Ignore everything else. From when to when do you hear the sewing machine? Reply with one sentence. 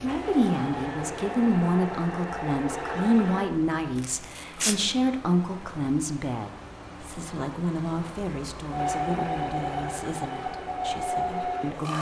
You can hear the sewing machine from 0.0 to 3.5 s and from 8.7 to 11.9 s.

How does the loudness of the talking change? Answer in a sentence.
The volume of the talking goes down.